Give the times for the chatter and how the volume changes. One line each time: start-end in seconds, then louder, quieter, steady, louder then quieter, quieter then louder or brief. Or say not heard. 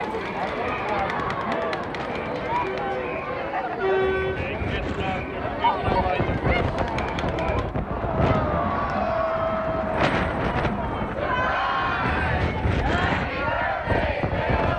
0.0-14.7 steady.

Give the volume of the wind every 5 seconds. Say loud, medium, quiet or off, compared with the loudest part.
medium, loud, loud.